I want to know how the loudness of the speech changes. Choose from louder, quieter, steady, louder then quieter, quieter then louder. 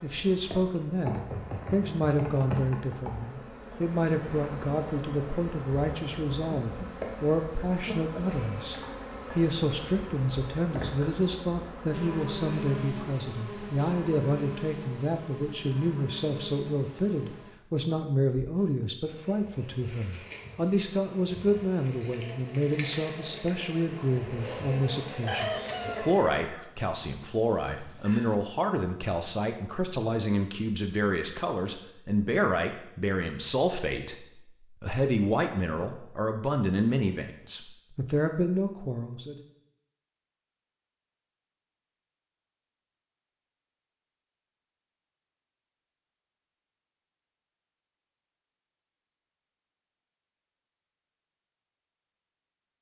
steady.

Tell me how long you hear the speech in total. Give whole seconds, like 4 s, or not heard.
39 s.